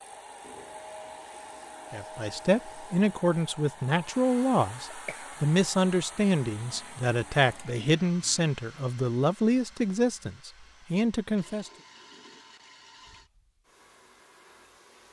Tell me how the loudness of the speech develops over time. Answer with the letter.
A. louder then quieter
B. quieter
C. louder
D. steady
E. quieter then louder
D.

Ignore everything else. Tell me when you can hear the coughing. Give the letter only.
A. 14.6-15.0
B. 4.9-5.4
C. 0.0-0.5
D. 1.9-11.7
B.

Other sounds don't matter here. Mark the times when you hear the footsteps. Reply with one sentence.
The footsteps can't be heard in this clip.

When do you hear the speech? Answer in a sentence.
You can hear the speech from 1.9 to 11.7 s.